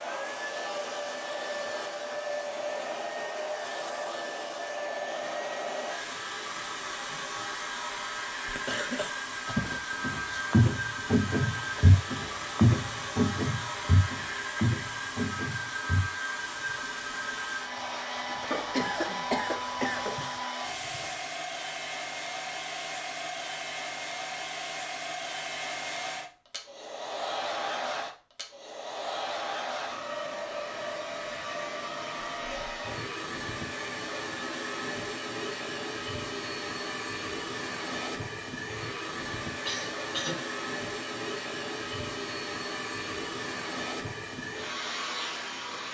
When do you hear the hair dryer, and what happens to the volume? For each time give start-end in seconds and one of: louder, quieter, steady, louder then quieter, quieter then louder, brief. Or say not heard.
0.0-45.8 steady.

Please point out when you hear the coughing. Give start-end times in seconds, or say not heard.
8.4-10.4, 18.4-20.2, 39.6-40.4.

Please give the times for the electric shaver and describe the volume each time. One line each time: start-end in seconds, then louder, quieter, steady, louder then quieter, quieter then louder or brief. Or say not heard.
not heard.